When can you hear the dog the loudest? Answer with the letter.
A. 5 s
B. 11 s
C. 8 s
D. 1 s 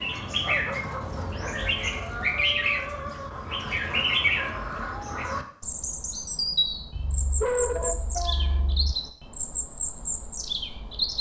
C.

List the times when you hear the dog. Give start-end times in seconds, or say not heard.
0.4-1.9, 6.9-8.9.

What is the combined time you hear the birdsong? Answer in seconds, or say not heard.
11 s.